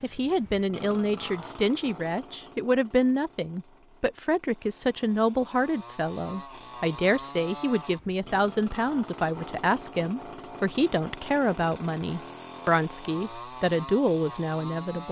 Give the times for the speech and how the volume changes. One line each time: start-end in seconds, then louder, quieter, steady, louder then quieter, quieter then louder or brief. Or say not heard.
0.0-15.0 steady.